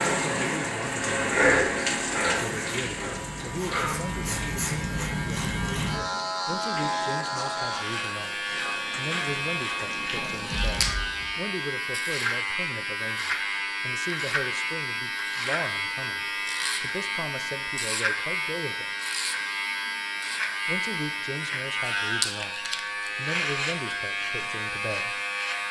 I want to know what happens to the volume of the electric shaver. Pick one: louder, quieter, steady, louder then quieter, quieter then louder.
steady.